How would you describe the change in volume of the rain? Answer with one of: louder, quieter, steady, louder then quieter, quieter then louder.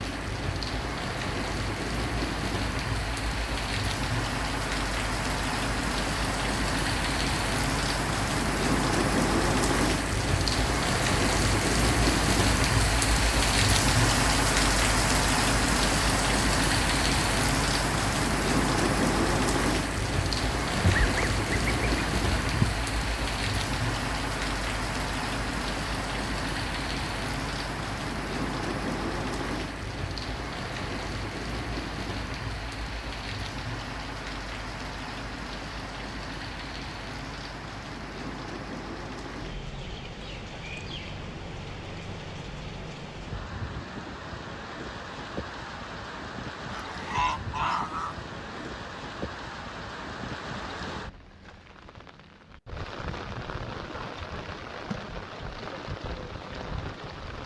quieter.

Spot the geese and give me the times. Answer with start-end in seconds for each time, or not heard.
20.8-22.8, 46.7-48.6.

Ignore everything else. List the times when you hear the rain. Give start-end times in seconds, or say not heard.
0.0-57.4.